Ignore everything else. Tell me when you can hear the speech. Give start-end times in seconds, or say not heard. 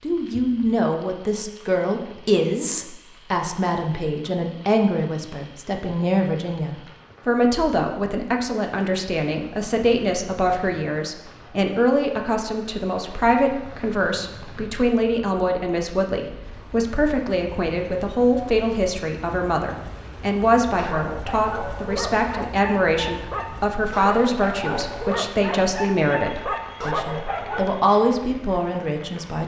0.0-29.4.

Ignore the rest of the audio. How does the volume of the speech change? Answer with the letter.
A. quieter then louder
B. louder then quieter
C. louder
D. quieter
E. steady
E.